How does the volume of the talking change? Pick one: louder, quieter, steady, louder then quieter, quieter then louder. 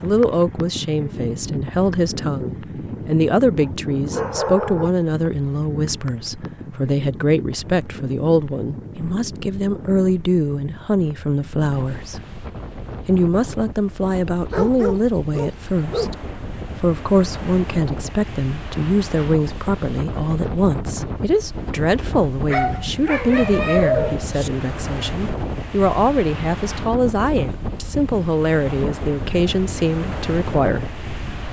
steady.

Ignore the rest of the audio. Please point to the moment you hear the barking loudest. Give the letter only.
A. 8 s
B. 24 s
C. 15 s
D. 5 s
B.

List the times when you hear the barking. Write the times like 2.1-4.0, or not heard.
3.6-4.9, 14.5-16.1, 22.4-24.5.